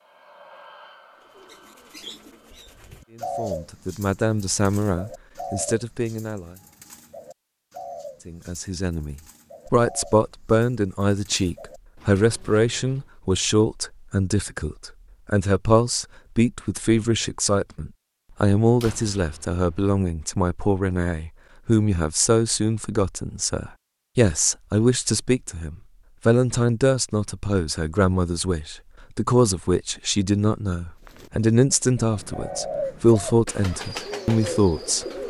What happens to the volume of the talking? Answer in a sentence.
The volume of the talking stays about the same.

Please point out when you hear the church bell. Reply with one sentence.
The church bell can't be heard in this clip.